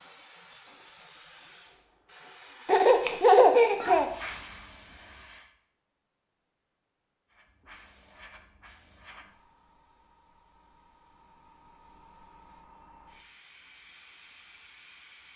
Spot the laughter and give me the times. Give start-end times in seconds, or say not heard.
2.6-4.1.